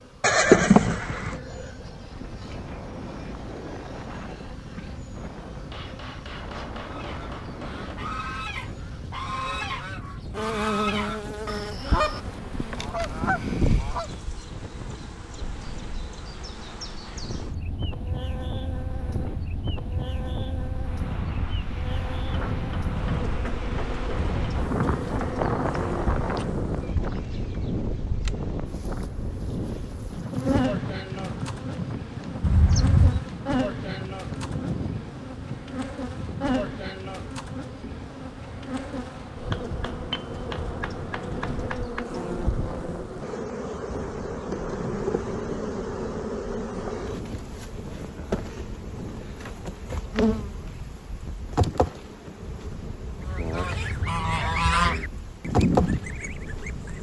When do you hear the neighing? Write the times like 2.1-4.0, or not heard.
0.2-1.4, 32.4-33.2, 53.1-54.6.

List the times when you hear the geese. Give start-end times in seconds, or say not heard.
6.8-14.2, 53.2-56.9.